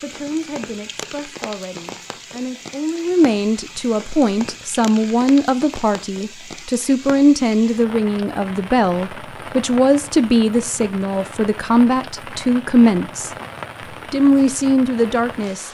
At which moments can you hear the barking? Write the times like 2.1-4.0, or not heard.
not heard.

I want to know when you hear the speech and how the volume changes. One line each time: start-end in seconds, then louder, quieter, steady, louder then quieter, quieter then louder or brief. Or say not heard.
0.0-13.3 louder
14.1-15.6 brief.